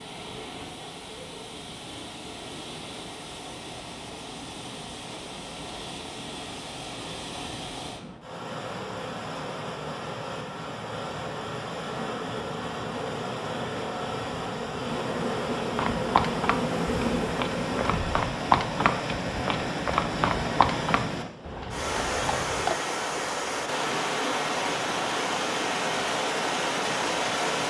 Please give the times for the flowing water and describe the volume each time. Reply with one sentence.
You can hear the flowing water from 0.0 to 27.6 s, getting louder.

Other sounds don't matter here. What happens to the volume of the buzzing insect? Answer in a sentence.
The volume of the buzzing insect goes up.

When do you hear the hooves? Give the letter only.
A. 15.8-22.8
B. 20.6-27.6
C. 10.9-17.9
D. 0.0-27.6
A.